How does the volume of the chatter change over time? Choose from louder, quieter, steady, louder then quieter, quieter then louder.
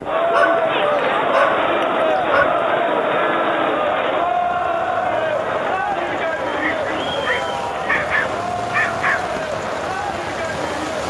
quieter.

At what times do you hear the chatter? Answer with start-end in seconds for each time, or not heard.
0.0-11.0.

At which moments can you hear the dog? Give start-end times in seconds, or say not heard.
0.3-2.5, 6.7-9.3.